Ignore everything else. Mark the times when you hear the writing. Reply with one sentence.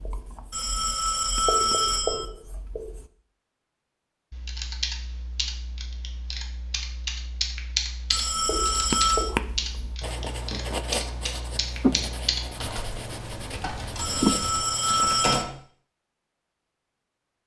The writing can be heard from 0.0 to 3.1 s and from 8.4 to 15.4 s.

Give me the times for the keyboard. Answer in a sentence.
The keyboard can be heard from 4.3 to 15.6 s.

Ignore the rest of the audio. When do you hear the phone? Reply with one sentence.
The phone can be heard from 0.5 to 2.2 s, from 8.1 to 9.3 s and from 13.9 to 15.4 s.